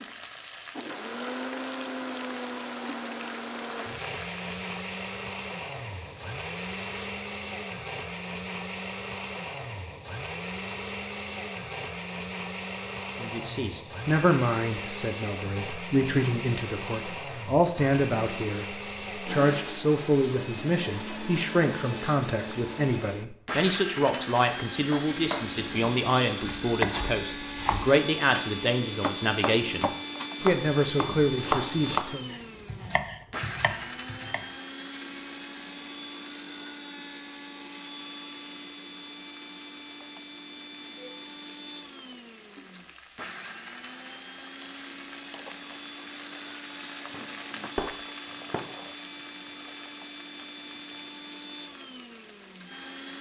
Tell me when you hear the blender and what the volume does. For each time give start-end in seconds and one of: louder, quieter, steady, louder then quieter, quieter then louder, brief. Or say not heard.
0.0-53.1 quieter.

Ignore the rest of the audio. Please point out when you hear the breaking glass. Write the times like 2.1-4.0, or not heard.
47.1-48.8.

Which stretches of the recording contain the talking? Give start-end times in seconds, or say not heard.
13.2-32.3.